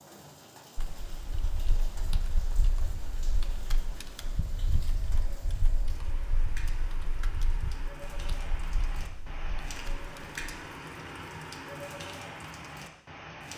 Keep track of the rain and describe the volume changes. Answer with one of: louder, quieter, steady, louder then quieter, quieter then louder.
louder.